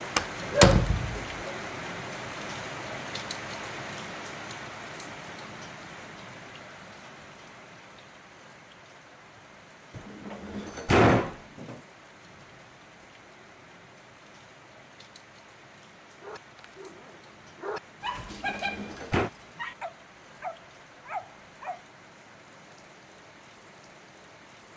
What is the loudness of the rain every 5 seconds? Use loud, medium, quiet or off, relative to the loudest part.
loud, medium, quiet, quiet, quiet.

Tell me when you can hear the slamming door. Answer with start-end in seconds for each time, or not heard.
0.1-1.2, 9.9-11.8, 18.1-19.3.